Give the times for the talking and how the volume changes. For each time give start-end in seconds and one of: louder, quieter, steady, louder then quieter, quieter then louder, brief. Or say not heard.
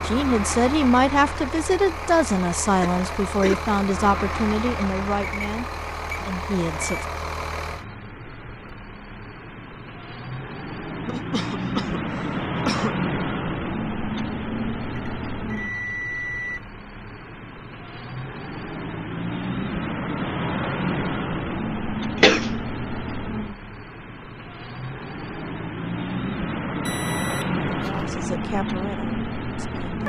0.0-7.0 quieter
27.8-30.0 brief.